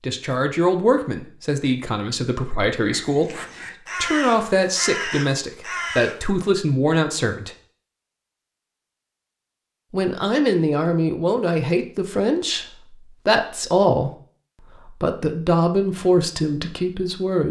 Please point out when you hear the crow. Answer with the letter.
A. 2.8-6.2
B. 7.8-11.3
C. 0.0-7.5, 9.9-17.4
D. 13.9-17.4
A.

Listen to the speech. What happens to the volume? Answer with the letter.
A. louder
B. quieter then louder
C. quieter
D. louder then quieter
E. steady
E.